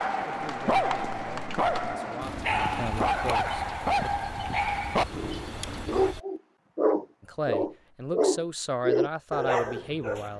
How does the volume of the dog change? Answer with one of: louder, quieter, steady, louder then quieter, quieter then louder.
steady.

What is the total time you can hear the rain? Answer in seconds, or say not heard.
6 s.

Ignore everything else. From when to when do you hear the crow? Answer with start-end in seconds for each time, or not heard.
not heard.